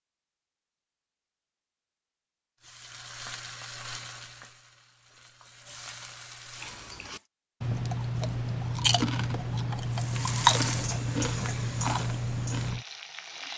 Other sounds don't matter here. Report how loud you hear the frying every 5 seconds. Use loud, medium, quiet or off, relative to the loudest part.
medium, medium, loud.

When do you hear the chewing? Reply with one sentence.
The chewing can be heard from 6.6 to 12.8 s.